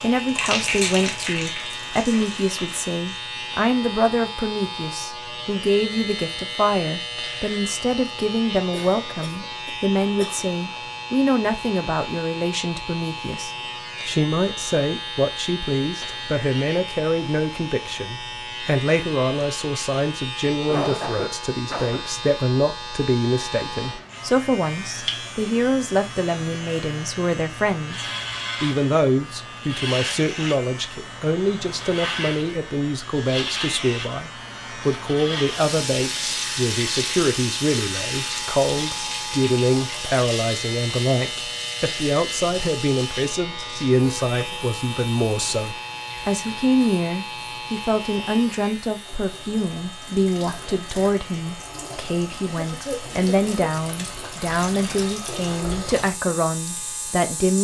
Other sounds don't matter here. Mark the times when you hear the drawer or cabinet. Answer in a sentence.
The drawer or cabinet can't be heard in this clip.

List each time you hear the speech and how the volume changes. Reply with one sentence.
You can hear the speech from 0.0 to 57.5 s, at a steady volume.